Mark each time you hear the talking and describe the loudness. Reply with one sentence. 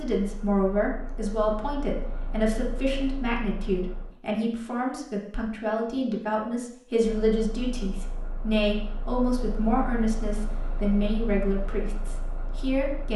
The talking can be heard from 0.0 to 13.1 s, at a steady volume.